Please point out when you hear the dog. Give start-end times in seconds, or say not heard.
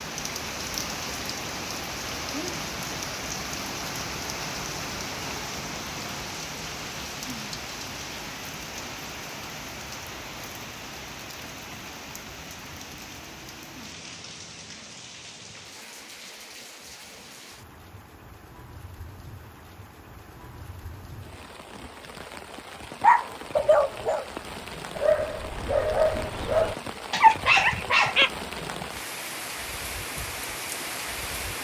23.0-28.3.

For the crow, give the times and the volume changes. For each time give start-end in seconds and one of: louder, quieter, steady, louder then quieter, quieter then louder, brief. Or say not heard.
not heard.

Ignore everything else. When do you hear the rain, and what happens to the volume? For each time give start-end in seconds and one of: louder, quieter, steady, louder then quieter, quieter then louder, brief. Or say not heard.
0.0-31.5 quieter then louder.